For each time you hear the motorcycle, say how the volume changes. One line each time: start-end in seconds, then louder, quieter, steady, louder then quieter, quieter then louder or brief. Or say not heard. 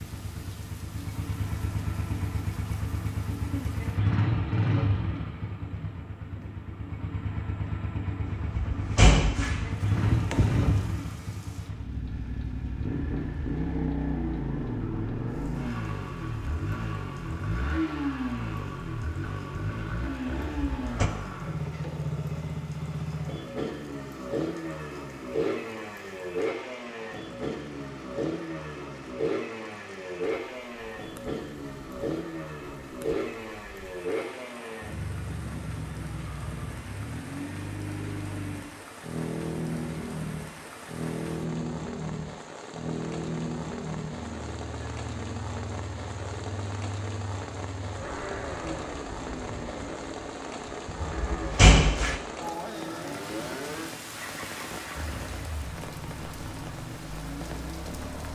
0.0-58.3 quieter.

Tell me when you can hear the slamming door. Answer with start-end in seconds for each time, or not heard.
8.2-10.8, 20.5-21.1, 50.9-52.2.